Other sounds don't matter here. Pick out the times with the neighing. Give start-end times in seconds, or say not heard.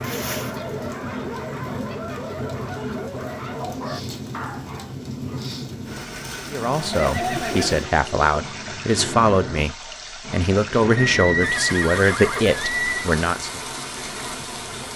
0.0-0.9, 6.9-8.3, 11.0-13.1.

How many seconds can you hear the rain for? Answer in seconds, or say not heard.
15 s.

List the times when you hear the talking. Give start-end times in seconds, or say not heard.
6.5-13.6.